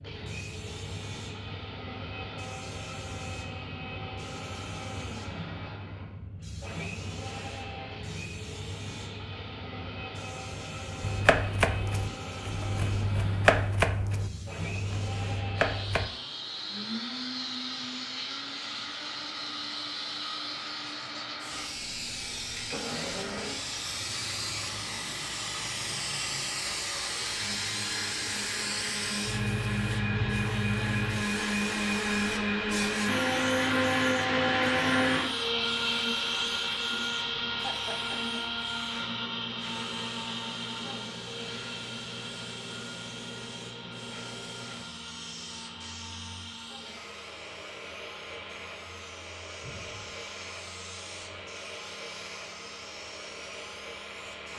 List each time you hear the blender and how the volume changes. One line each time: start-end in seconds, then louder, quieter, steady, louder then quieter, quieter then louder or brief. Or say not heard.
0.0-54.5 louder then quieter.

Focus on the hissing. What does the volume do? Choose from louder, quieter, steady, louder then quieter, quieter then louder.
louder then quieter.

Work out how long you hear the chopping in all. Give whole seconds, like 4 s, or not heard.
5 s.